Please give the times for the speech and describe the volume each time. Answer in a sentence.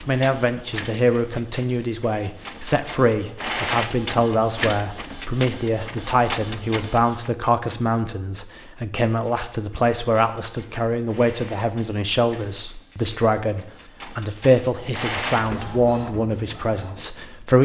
You can hear the speech from 0.1 to 17.5 s, at a steady volume.